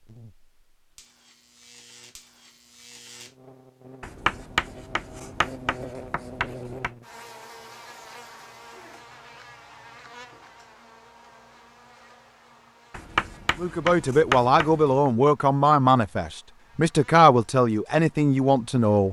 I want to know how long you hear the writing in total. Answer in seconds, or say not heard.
5 s.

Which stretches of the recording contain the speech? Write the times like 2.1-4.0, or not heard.
13.6-19.0.